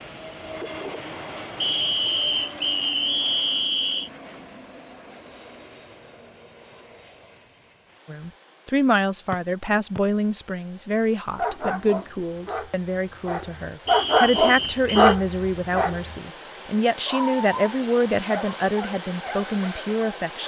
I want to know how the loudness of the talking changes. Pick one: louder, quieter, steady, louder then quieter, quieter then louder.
steady.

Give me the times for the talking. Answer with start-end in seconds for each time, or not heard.
8.1-20.4.